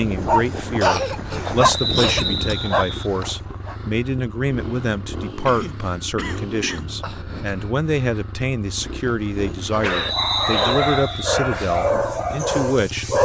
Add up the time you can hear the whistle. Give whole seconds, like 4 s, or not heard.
3 s.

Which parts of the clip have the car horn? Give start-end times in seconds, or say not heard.
not heard.